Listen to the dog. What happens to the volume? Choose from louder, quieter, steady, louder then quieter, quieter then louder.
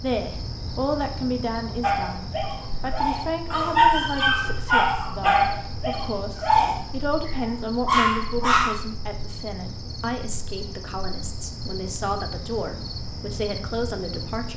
louder.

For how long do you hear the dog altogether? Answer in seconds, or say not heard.
7 s.